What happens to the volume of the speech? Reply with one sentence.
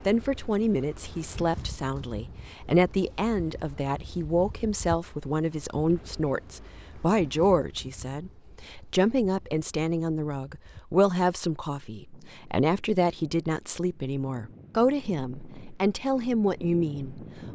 The volume of the speech stays about the same.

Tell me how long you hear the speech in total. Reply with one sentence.
The speech can be heard for 17 seconds in total.